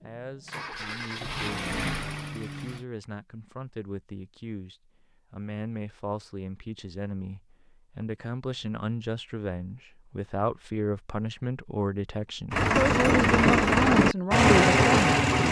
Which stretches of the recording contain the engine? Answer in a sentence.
You can hear the engine from 0.0 to 2.9 s and from 12.5 to 15.4 s.